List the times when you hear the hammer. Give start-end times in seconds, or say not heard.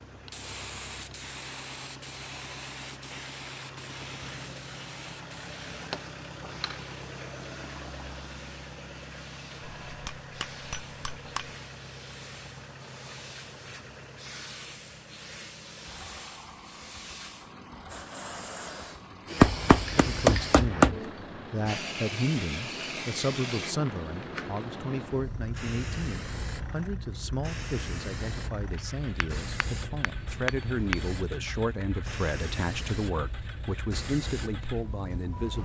5.7-6.8, 9.6-11.5, 19.4-20.9, 28.8-31.1.